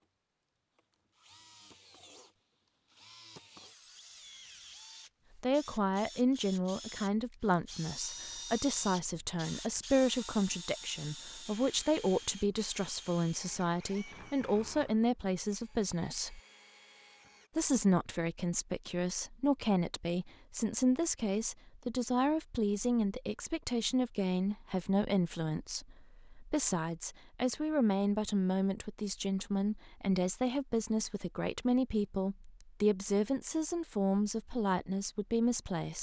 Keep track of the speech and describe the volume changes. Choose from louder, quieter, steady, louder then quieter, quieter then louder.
steady.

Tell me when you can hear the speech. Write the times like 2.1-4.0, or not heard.
5.3-16.4, 17.6-35.9.